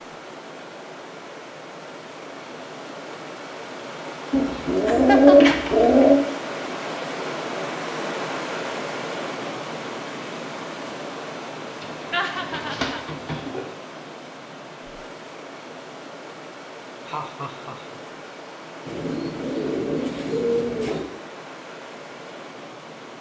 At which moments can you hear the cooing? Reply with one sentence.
The cooing can be heard from 4.3 to 6.2 s, from 11.8 to 13.6 s and from 18.9 to 21.1 s.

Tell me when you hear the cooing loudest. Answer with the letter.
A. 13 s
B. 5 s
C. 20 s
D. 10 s
B.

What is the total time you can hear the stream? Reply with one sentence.
The stream can be heard for 23 seconds in total.